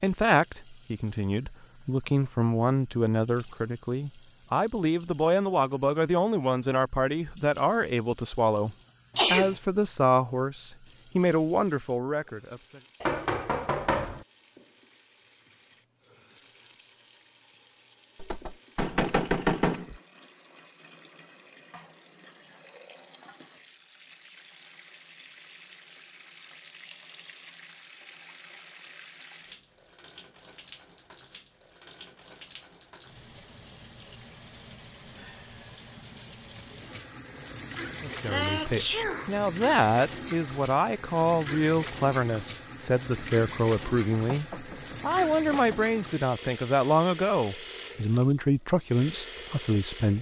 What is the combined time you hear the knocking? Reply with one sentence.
You can hear the knocking for 5 seconds altogether.